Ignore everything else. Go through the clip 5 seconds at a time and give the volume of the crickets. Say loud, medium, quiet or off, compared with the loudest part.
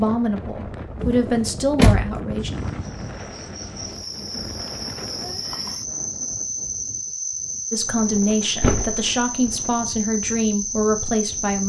medium, loud, loud.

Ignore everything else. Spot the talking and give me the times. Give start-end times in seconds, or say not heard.
0.0-2.5, 7.7-11.6.